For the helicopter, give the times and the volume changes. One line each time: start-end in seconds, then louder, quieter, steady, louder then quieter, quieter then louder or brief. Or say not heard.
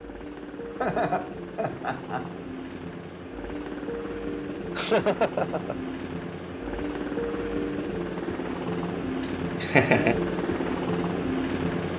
0.0-11.9 louder.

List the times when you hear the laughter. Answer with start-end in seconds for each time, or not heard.
0.8-2.3, 4.8-5.8, 9.2-10.2.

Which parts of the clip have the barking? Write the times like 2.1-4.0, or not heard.
not heard.